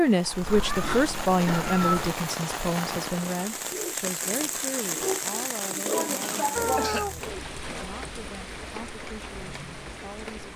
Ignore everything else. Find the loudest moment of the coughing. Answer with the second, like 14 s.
7 s.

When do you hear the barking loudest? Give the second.
6 s.